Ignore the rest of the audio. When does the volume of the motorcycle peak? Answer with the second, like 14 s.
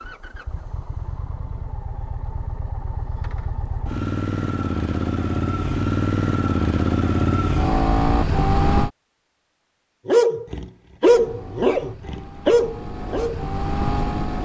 8 s.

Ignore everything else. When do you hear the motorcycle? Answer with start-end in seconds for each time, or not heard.
0.0-8.9, 11.0-14.4.